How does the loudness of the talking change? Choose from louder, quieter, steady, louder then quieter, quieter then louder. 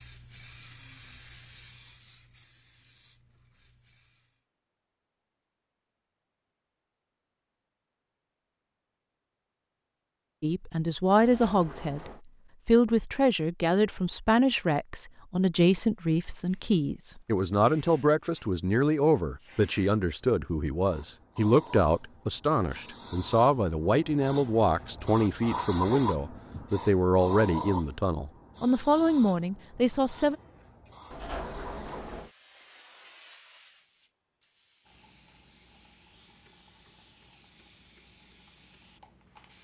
steady.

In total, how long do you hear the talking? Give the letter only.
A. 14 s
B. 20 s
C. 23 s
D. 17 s
B.